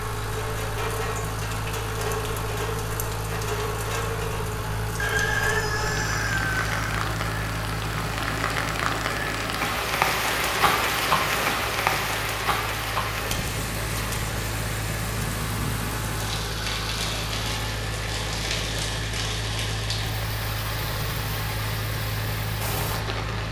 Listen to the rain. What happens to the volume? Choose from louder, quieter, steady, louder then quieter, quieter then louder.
louder then quieter.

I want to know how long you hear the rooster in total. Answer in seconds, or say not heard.
2 s.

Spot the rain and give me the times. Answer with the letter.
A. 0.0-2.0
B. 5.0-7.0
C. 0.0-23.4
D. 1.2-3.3
C.